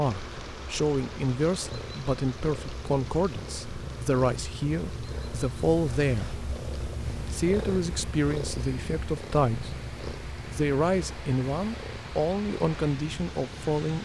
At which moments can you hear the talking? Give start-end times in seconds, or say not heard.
0.0-6.3, 7.3-9.7, 10.4-14.0.